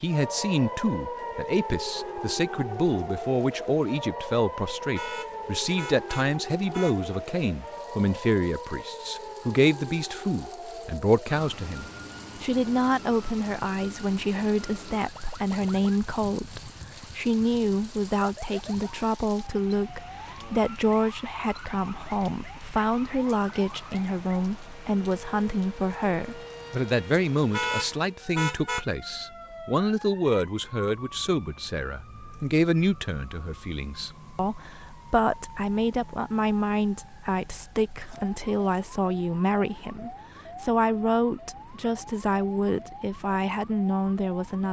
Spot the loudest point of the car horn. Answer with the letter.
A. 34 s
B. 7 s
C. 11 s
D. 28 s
D.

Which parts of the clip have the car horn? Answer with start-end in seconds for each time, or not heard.
5.0-7.0, 27.5-28.9.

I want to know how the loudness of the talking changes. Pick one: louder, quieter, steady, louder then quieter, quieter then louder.
steady.